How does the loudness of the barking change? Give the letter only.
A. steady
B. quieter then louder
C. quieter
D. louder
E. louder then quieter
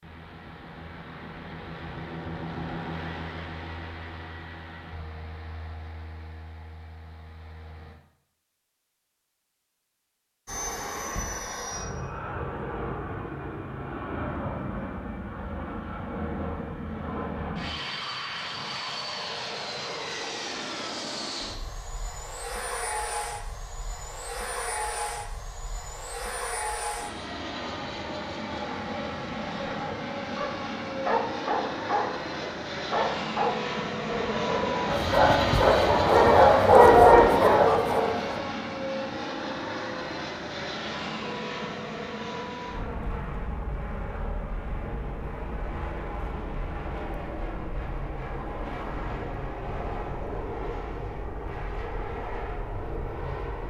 D.